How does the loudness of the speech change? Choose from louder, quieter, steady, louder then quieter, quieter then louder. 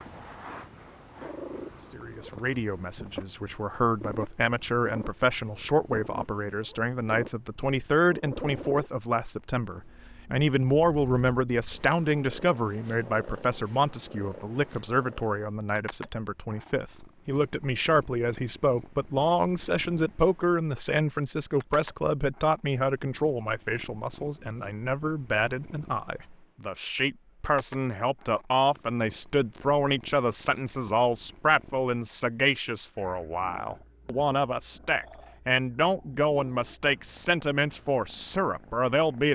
steady.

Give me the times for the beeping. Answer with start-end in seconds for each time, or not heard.
not heard.